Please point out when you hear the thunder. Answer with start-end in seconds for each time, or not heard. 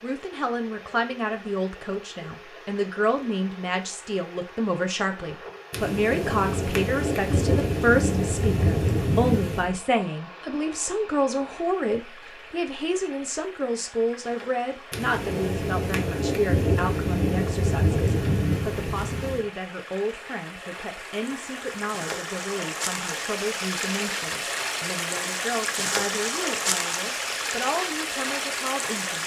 5.7-9.7, 14.9-19.4.